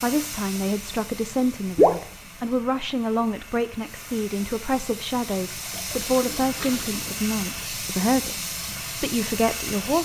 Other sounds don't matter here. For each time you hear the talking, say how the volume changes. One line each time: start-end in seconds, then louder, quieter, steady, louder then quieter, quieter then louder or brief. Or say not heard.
0.0-9.9 steady.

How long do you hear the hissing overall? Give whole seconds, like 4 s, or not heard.
10 s.